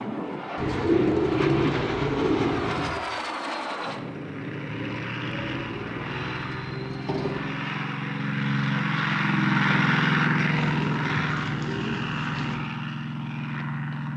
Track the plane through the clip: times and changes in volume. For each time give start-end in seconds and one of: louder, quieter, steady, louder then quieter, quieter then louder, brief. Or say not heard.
0.0-14.1 louder then quieter.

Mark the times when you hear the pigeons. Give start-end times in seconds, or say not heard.
0.6-3.0, 5.2-7.5, 10.6-12.6.